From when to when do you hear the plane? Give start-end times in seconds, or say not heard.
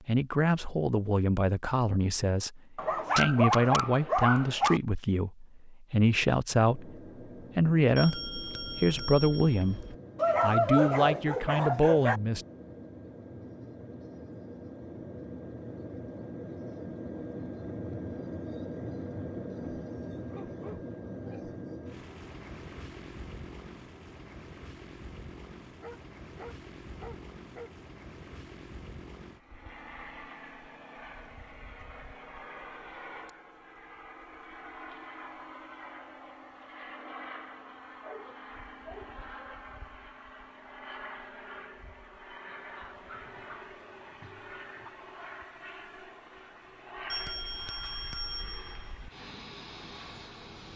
6.6-50.7.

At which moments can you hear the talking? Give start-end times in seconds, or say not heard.
0.1-7.0, 7.5-12.4.